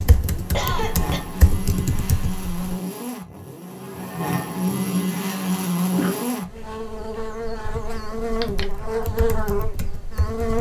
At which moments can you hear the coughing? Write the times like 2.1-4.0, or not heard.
0.5-1.2, 5.8-6.3.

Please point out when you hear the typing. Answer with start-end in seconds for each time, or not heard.
0.0-2.8, 7.6-10.5.